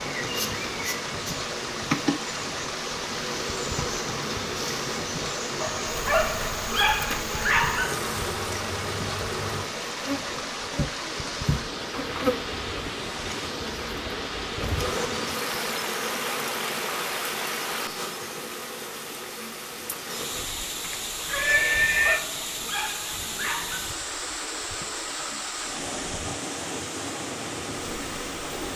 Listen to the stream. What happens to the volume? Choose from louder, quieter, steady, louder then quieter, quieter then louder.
steady.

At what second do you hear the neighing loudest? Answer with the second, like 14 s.
22 s.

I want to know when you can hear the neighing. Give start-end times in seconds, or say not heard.
11.9-12.4, 19.7-22.2.